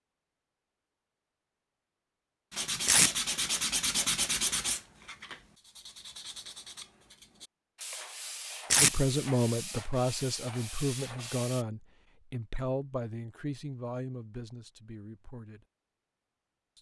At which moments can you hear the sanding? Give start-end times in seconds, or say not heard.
2.5-11.7.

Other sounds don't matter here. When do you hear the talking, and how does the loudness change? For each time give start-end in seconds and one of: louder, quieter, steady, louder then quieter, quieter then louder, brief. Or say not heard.
8.8-15.7 quieter.